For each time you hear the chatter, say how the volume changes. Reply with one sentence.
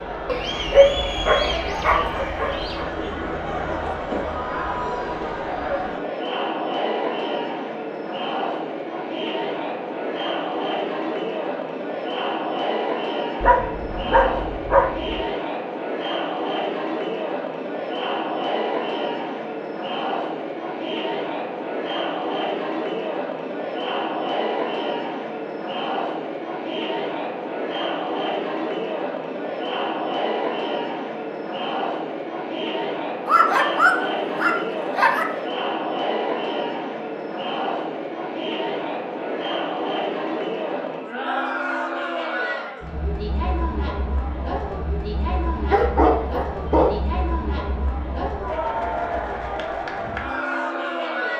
The chatter can be heard from 0.0 to 51.3 s, at a steady volume.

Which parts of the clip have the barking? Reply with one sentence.
You can hear the barking from 0.2 to 2.9 s, from 13.4 to 15.2 s, from 33.2 to 35.3 s and from 45.5 to 47.0 s.